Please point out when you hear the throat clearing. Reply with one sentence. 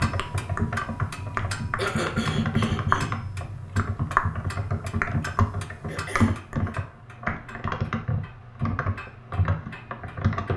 The throat clearing can be heard from 1.8 to 3.2 s and from 5.8 to 6.8 s.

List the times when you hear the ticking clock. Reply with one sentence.
The ticking clock can be heard from 0.0 to 10.5 s.